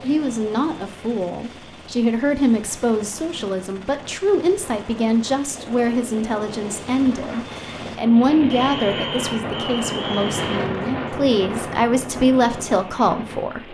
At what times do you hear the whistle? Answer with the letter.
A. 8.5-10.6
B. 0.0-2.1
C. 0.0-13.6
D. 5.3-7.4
A.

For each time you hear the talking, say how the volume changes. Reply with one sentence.
You can hear the talking from 0.0 to 13.6 s, at a steady volume.